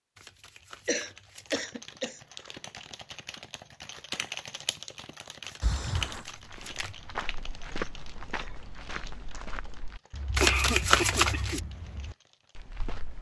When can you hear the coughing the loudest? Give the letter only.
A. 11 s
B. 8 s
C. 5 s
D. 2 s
A.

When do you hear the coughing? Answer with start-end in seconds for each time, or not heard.
0.8-2.2, 5.6-6.2, 10.4-11.6.